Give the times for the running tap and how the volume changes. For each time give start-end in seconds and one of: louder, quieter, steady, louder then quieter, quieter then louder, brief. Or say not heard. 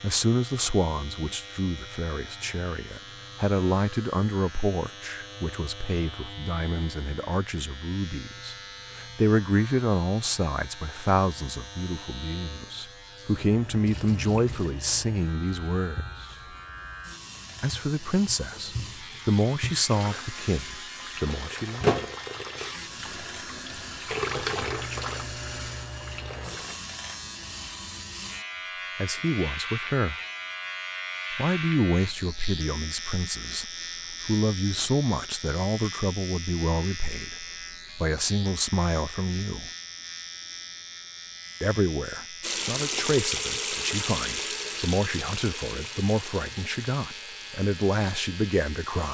13.8-26.8 louder
42.4-49.0 quieter.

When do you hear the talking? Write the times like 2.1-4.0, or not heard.
0.0-16.3, 17.6-21.9, 28.9-30.1, 31.3-39.7, 41.6-49.0.